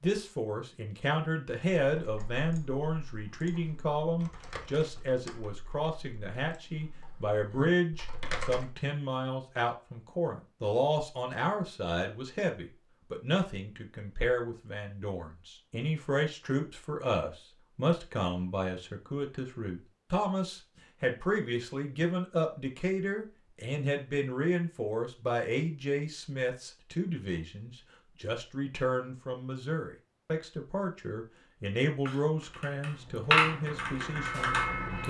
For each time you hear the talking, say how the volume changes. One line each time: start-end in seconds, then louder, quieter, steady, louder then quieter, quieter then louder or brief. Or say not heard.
0.0-35.0 steady.